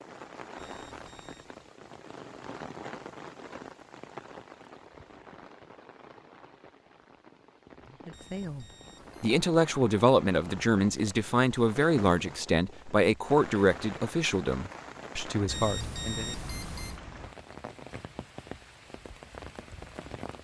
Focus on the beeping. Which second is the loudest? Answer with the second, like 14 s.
16 s.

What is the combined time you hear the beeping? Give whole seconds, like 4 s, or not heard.
4 s.